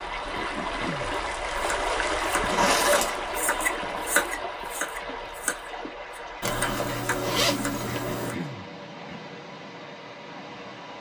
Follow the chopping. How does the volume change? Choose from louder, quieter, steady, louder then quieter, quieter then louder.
louder then quieter.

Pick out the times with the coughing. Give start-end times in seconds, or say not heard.
0.3-1.6, 7.9-9.2.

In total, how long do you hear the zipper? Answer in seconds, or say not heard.
3 s.